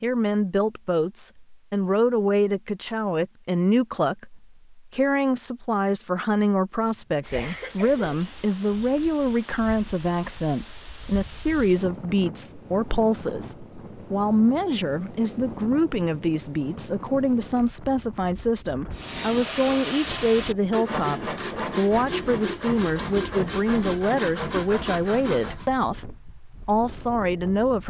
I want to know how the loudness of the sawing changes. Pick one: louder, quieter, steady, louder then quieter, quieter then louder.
steady.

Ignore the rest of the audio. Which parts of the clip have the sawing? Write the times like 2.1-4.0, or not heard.
18.9-25.7.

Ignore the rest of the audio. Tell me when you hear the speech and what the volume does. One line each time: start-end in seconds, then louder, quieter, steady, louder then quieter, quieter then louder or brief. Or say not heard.
0.0-27.8 steady.